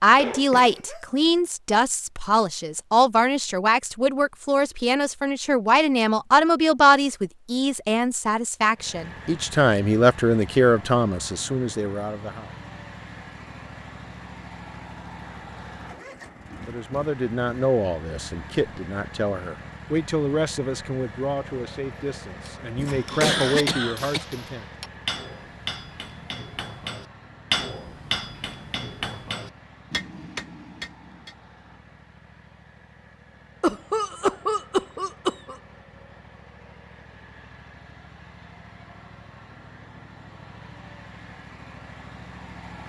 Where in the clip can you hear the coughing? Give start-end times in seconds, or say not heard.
0.1-1.0, 22.8-24.2, 33.6-35.5.